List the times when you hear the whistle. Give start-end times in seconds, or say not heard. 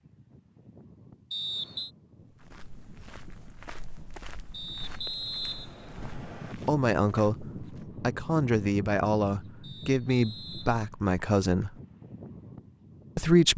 1.3-1.9, 4.5-6.5, 9.6-10.8.